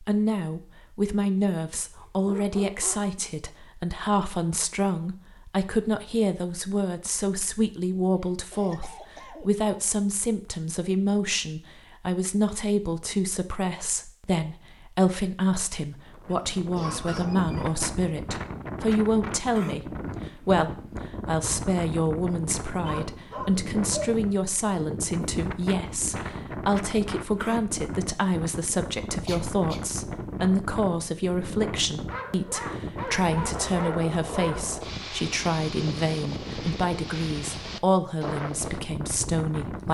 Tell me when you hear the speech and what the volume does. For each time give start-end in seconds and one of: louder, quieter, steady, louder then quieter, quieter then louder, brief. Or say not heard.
0.0-39.8 steady.